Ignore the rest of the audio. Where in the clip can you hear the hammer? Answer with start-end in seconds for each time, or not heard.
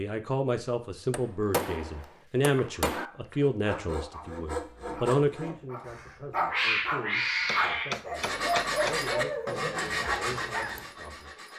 1.1-3.1, 7.5-8.9.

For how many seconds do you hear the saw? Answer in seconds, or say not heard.
6 s.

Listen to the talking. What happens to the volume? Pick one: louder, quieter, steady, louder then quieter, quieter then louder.
quieter.